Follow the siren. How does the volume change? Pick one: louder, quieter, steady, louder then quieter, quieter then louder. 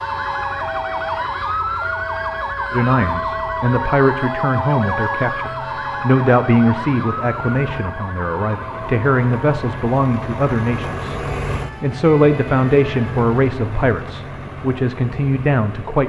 quieter.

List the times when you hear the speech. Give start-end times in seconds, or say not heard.
2.7-11.2, 11.8-16.0.